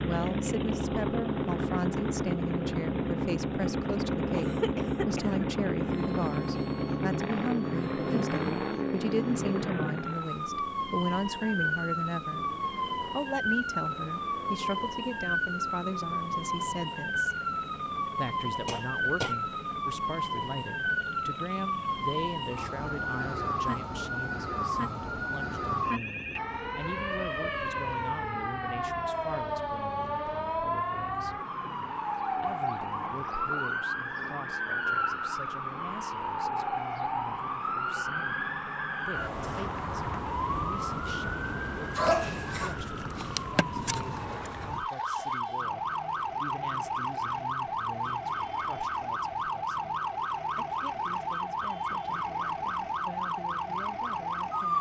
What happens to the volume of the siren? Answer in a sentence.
The loudness of the siren stays about the same.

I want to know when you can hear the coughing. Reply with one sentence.
The coughing can be heard from 4.3 to 5.5 s, from 18.6 to 19.4 s and from 42.0 to 42.8 s.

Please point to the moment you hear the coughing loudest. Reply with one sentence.
The volume of the coughing peaks at 42 seconds.